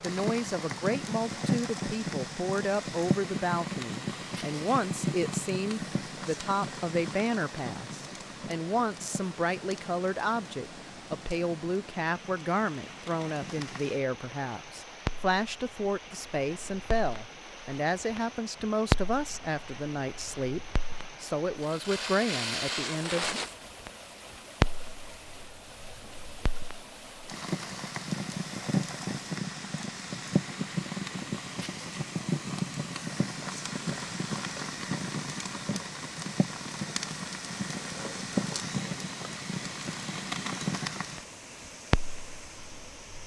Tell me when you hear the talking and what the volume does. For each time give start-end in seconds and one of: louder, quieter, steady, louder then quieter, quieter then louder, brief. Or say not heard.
0.0-23.4 steady.